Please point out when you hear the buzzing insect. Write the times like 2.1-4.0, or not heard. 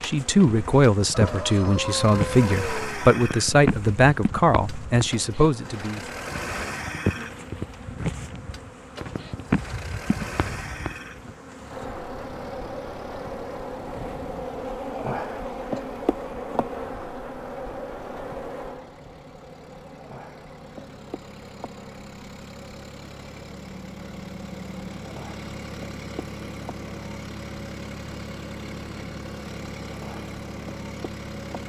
0.0-31.6.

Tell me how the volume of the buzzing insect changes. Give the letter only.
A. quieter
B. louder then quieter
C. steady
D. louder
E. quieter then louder
A.